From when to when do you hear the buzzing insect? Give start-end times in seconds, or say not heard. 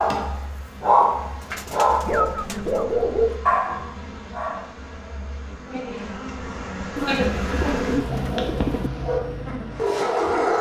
0.0-10.5.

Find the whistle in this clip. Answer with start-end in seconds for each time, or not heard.
not heard.